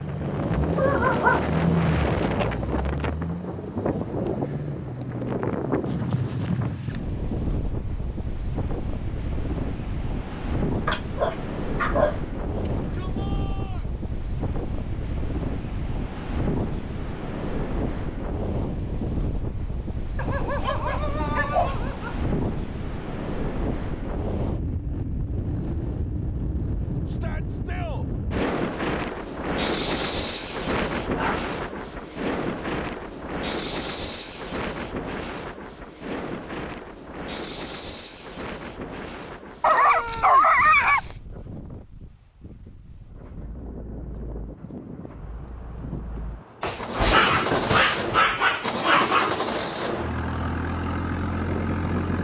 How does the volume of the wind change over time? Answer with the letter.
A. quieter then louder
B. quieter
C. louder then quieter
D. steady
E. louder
B.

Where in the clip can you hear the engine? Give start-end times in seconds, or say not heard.
0.0-7.0, 43.0-52.1.